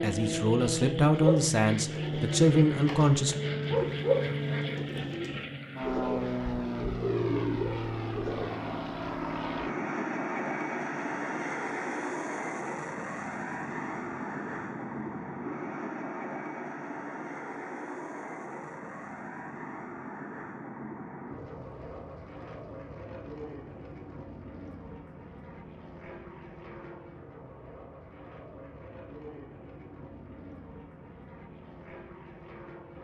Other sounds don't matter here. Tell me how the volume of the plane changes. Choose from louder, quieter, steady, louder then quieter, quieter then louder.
quieter.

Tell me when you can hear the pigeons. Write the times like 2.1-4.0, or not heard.
1.1-8.4.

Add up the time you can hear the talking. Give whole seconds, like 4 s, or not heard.
3 s.